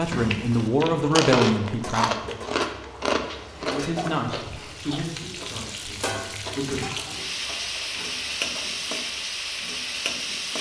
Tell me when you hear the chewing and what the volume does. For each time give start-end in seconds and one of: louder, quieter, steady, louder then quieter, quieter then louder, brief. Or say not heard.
0.1-9.1 quieter.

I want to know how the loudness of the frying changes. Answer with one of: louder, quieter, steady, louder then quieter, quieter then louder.
louder.